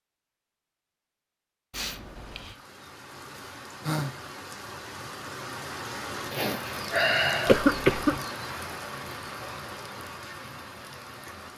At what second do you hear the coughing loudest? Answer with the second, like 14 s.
8 s.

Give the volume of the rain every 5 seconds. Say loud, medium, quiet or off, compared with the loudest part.
medium, loud, medium.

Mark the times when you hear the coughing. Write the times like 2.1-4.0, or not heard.
1.7-2.5, 7.5-8.2.